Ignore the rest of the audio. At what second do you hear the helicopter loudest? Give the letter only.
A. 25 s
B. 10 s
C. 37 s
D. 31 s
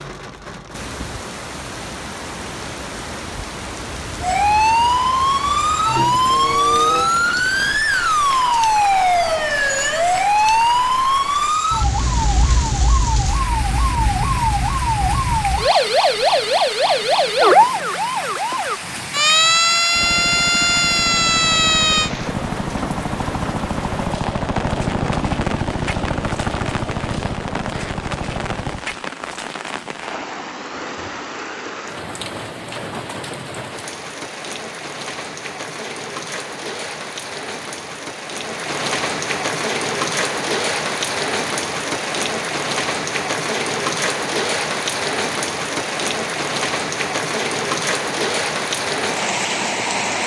A.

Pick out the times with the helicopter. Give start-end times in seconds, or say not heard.
19.9-28.9.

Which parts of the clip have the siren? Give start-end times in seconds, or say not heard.
4.2-22.1.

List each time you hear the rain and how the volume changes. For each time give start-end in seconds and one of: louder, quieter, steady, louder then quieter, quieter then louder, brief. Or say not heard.
0.0-50.2 louder.